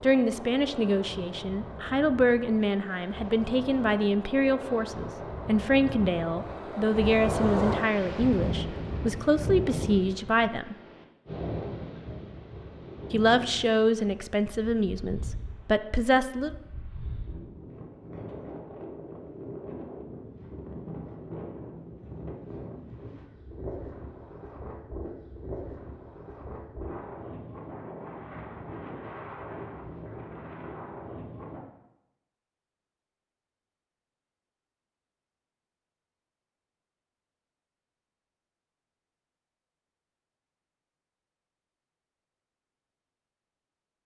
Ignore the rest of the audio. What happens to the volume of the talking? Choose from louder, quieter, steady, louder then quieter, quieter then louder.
steady.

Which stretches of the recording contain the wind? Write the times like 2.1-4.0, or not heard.
0.0-31.6.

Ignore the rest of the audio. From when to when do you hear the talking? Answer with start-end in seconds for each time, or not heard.
0.0-10.8, 13.1-16.6.